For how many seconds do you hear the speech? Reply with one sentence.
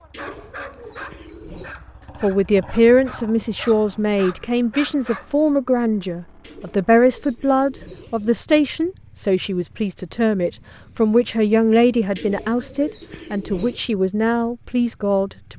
The speech can be heard for 13 seconds in total.